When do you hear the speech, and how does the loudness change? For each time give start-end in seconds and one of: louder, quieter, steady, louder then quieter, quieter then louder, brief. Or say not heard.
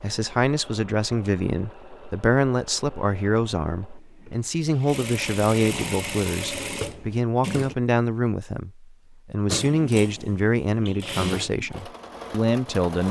0.0-13.0 steady.